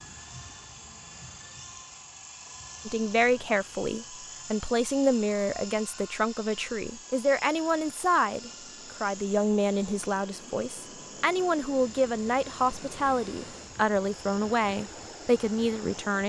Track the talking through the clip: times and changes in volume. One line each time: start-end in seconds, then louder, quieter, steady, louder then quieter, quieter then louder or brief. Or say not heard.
2.9-16.2 steady.